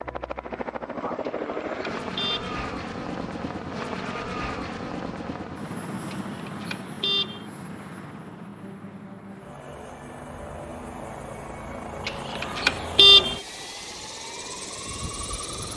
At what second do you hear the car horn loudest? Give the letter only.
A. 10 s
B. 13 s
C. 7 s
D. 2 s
B.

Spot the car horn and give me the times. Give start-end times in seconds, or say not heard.
1.2-2.5, 6.1-7.5, 12.1-13.4.